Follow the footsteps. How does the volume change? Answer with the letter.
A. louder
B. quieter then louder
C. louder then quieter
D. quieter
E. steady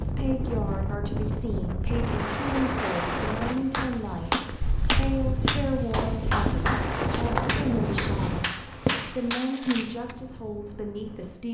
A.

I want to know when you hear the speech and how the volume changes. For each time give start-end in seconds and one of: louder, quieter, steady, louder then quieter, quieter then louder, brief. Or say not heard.
0.0-11.4 steady.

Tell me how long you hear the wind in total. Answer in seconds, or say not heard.
11 s.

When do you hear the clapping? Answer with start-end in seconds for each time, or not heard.
3.7-10.2.